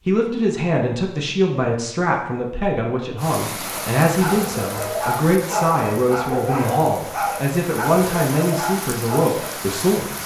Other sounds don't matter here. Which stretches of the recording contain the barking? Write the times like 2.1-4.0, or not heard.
3.6-9.4.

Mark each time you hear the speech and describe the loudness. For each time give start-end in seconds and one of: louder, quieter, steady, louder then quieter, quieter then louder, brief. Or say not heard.
0.1-10.2 steady.